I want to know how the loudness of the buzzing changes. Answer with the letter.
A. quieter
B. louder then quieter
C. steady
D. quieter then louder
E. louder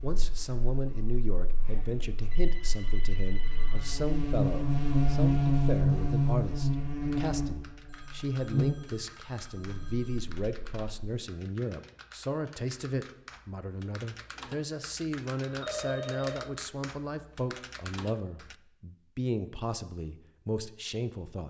B.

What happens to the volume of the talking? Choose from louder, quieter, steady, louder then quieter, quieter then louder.
steady.